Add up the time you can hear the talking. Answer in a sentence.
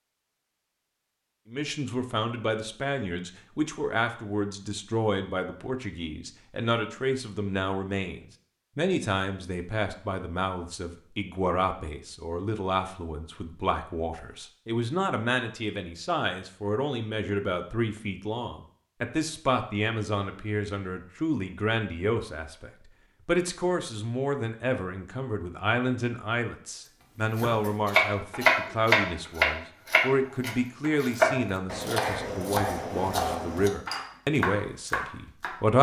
The talking can be heard for 34 seconds in total.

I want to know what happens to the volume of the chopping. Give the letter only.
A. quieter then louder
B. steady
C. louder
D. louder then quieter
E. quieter
E.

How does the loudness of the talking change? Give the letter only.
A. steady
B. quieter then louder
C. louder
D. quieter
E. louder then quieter
A.